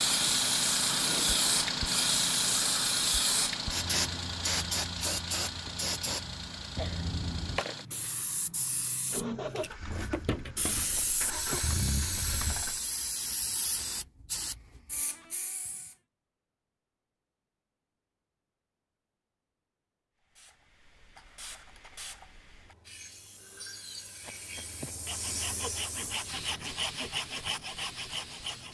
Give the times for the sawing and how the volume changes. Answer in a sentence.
You can hear the sawing from 22.9 to 28.6 s, getting louder.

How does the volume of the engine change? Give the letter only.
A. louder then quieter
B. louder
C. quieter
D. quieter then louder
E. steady
C.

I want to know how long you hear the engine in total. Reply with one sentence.
You can hear the engine for 13 seconds altogether.